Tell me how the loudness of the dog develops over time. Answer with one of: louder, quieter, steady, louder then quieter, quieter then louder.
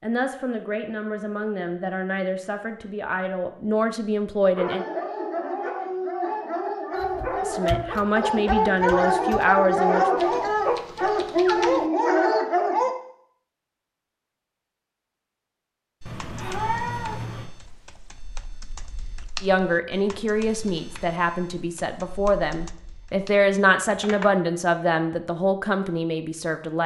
louder.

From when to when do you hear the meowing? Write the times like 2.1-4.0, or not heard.
16.1-17.5.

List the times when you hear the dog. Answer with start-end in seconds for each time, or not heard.
4.5-12.9.